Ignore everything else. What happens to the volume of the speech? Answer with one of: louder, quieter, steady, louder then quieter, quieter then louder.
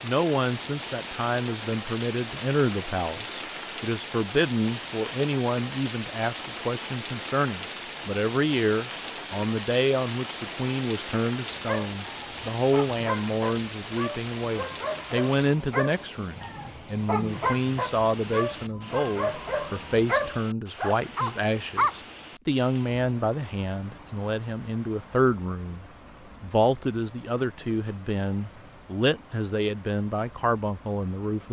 steady.